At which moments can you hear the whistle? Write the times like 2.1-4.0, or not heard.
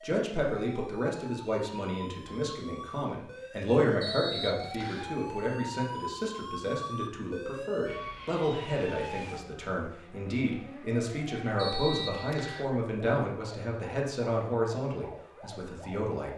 4.0-5.2, 11.6-12.7.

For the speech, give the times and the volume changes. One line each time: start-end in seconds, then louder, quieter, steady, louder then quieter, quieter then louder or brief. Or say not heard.
0.0-16.3 steady.